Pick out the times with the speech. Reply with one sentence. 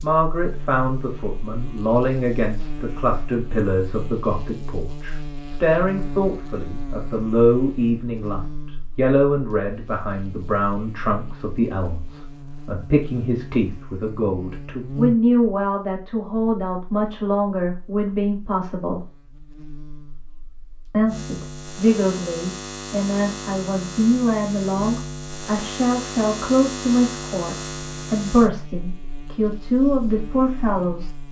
The speech can be heard from 0.0 to 19.1 s and from 20.9 to 31.1 s.